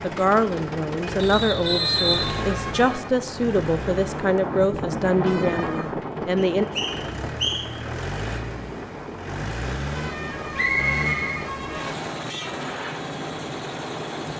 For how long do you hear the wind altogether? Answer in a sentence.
The wind can be heard for 14 seconds in total.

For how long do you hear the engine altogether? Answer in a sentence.
The engine can be heard for 14 seconds in total.